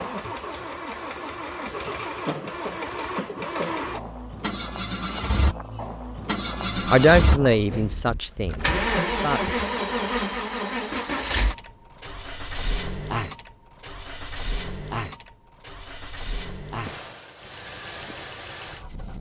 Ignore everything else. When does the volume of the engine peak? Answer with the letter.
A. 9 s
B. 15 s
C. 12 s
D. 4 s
A.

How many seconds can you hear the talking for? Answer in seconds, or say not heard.
3 s.